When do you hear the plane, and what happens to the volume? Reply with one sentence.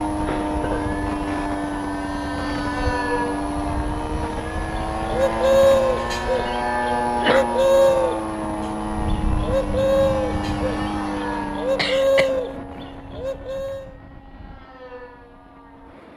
You can hear the plane from 0.0 to 16.1 s, getting quieter.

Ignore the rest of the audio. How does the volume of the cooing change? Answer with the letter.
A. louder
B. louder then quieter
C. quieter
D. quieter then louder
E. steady
D.